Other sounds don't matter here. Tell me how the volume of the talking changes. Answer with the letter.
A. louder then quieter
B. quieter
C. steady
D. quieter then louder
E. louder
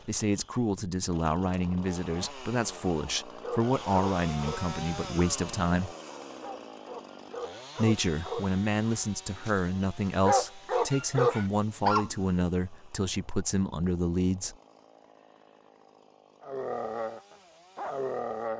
C.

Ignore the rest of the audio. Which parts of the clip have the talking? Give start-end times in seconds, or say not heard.
0.1-5.9, 7.8-14.6.